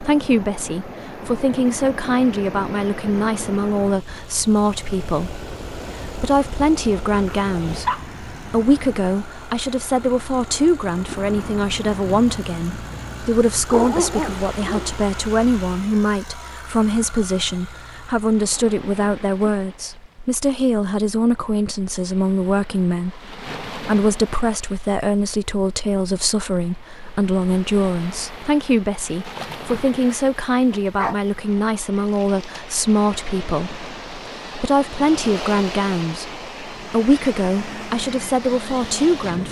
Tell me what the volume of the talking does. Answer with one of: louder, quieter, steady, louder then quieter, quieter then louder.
steady.